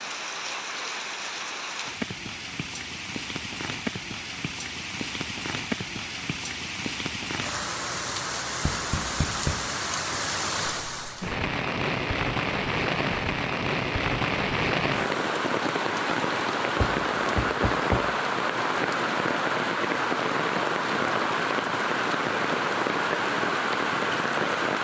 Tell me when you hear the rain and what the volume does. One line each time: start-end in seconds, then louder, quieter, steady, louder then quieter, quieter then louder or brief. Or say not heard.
0.0-24.7 louder.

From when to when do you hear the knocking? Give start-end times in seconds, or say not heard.
8.6-9.7, 16.8-18.1.